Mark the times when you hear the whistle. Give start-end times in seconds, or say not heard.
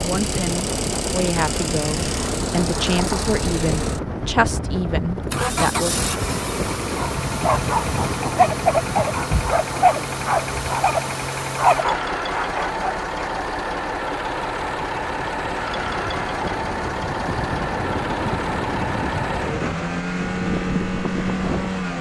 not heard.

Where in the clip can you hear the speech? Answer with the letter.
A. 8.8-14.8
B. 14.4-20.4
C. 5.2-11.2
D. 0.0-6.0
D.